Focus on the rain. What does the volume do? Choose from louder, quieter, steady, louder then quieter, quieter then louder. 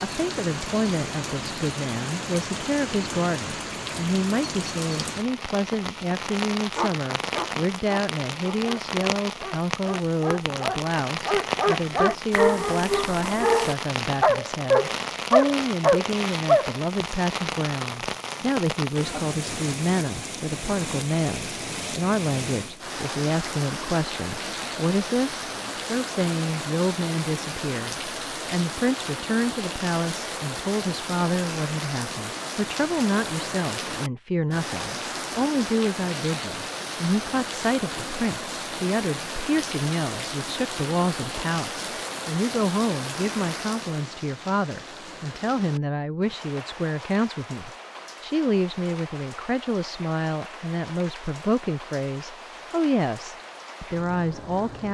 quieter.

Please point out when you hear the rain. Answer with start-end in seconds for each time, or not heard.
0.0-54.8.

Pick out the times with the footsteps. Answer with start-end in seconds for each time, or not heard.
not heard.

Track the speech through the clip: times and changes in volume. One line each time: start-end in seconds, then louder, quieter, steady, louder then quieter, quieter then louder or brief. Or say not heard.
0.0-54.8 steady.